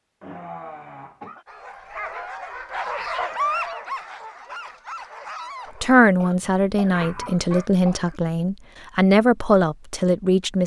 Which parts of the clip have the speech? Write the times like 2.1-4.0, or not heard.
5.8-10.6.